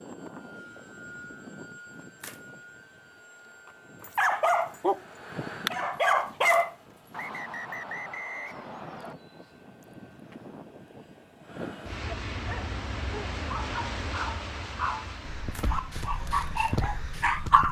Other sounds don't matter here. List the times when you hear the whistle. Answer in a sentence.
You can hear the whistle from 7.1 to 9.2 s.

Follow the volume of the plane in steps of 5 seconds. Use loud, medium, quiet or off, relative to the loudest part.
medium, loud, loud, medium.